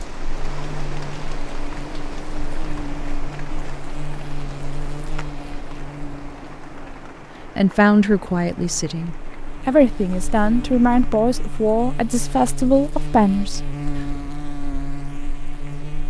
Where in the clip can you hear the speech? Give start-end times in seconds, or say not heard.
7.5-14.1.